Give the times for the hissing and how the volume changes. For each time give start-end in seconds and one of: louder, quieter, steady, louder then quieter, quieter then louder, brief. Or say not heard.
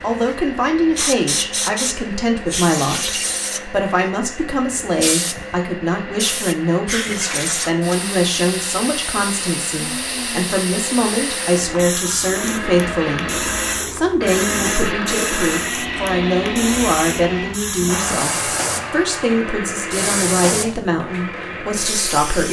0.0-22.4 steady.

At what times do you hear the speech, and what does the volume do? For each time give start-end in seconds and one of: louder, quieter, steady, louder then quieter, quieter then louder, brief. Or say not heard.
0.0-22.4 steady.